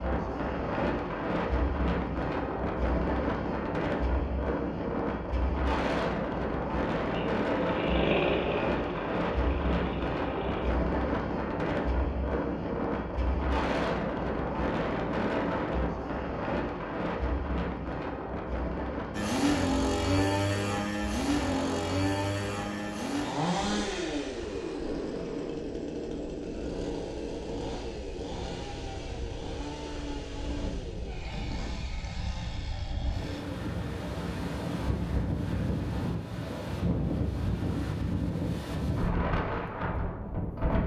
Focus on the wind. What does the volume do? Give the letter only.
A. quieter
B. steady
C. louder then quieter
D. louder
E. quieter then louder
E.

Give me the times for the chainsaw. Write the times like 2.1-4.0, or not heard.
7.1-10.8, 19.1-33.5.